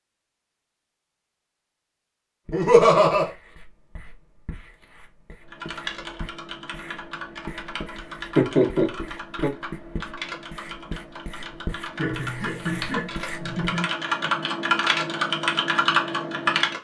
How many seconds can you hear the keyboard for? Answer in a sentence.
The keyboard can be heard for 11 seconds in total.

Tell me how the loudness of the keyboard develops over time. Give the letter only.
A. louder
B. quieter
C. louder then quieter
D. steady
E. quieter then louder
A.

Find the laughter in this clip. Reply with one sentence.
The laughter can be heard from 2.5 to 3.3 s, from 8.3 to 9.5 s and from 11.9 to 13.9 s.